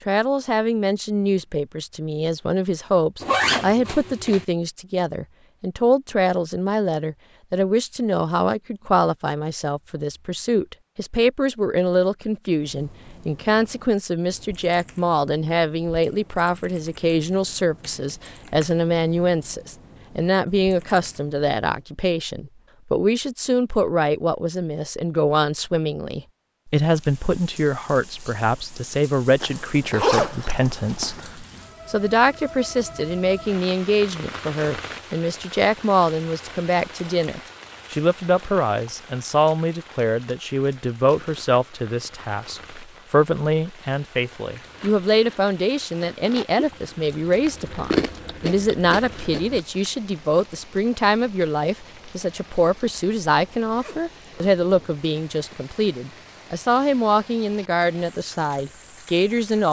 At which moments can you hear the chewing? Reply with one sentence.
You can hear the chewing from 44.5 to 49.6 s.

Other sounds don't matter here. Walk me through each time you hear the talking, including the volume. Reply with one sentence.
You can hear the talking from 0.1 to 59.6 s, at a steady volume.